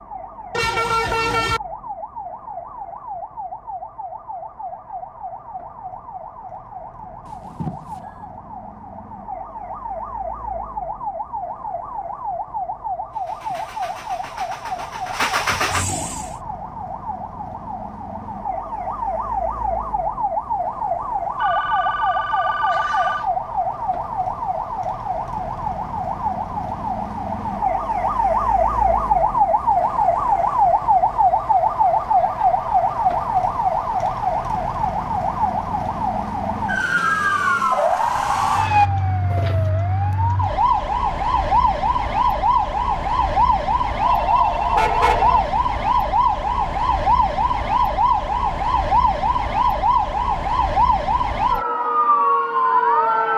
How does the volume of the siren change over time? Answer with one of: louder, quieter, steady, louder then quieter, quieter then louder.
louder.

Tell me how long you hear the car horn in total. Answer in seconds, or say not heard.
2 s.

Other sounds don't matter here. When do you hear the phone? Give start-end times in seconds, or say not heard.
7.2-8.2, 21.4-23.3, 44.0-45.5.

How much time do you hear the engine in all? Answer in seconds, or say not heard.
3 s.